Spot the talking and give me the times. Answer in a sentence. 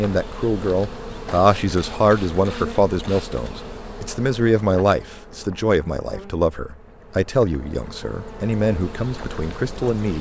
You can hear the talking from 0.0 to 10.1 s.